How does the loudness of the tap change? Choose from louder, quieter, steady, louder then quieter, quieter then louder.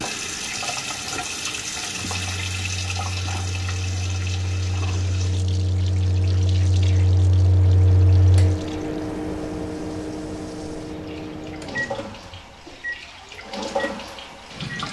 quieter then louder.